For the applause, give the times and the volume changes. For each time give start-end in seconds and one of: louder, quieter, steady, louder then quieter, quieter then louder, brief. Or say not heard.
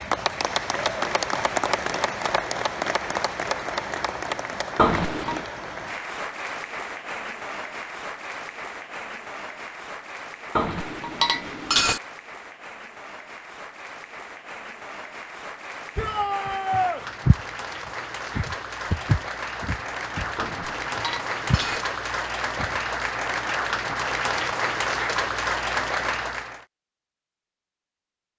0.0-26.6 quieter then louder.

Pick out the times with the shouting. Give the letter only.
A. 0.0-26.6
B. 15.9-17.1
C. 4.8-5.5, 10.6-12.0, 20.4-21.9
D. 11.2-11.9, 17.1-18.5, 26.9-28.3
B.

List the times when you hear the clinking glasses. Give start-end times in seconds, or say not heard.
4.8-5.5, 10.6-12.0, 20.4-21.9.